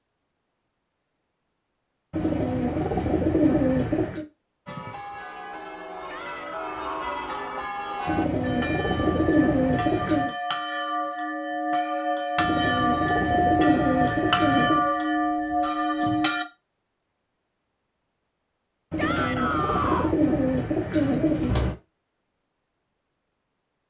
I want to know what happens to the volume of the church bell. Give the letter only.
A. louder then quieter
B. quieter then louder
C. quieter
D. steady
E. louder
E.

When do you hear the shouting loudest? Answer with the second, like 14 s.
20 s.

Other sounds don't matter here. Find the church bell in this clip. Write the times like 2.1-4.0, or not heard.
4.7-16.4.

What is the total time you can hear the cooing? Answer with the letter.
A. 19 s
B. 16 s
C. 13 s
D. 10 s
D.